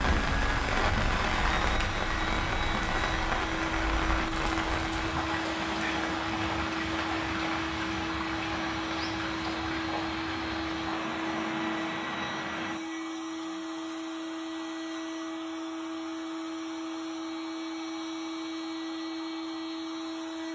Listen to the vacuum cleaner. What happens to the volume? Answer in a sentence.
The volume of the vacuum cleaner stays about the same.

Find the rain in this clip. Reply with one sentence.
You can hear the rain from 0.0 to 12.8 s.